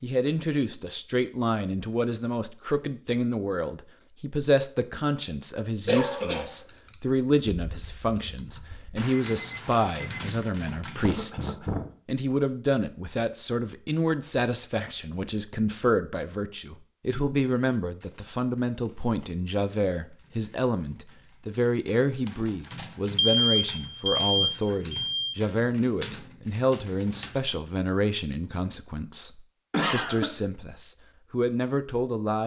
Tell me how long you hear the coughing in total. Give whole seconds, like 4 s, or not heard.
2 s.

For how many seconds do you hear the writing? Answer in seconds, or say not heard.
not heard.